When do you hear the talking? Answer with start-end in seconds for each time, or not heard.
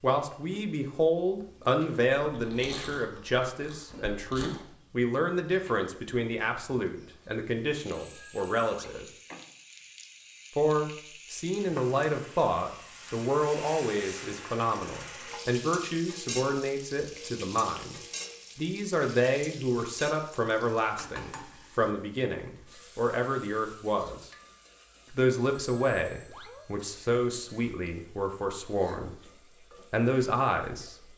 0.0-9.1, 10.6-17.9, 18.6-24.3, 25.1-29.2, 29.9-30.9.